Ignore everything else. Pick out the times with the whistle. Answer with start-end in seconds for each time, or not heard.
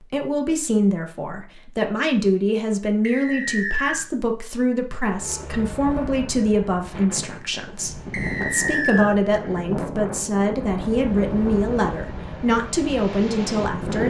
3.0-4.0, 8.1-9.2.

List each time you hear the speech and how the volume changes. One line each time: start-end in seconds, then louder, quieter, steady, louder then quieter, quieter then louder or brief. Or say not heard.
0.0-14.0 steady.